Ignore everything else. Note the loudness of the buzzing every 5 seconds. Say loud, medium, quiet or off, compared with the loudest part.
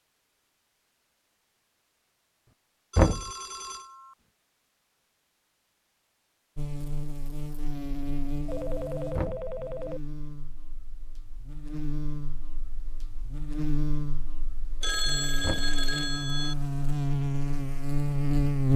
off, medium, medium, loud.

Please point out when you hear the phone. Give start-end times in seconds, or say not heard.
2.9-4.2, 8.4-10.0, 14.8-16.6.